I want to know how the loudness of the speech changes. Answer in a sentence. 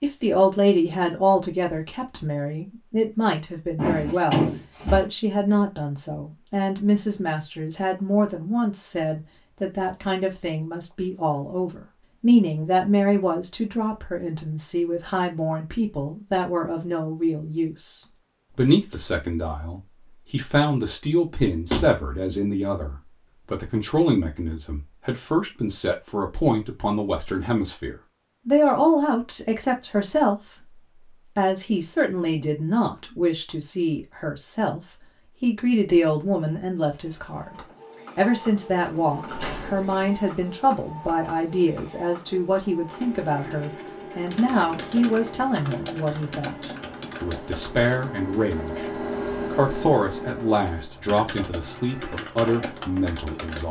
The loudness of the speech stays about the same.